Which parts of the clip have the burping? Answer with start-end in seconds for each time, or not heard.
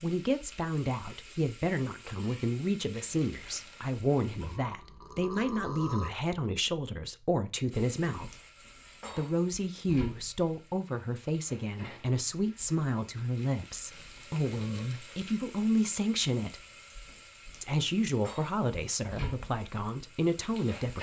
4.4-6.1, 13.8-14.9.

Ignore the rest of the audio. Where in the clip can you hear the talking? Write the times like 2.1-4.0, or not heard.
0.0-8.3, 9.2-16.6, 17.6-20.9.